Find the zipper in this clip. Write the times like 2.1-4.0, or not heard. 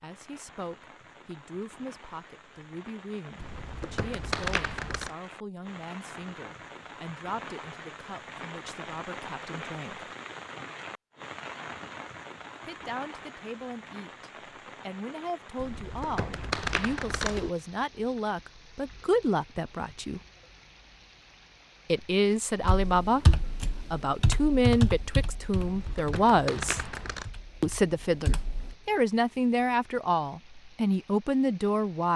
not heard.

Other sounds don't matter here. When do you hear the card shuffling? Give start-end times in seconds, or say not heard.
3.4-5.1, 15.6-17.5, 25.6-27.3.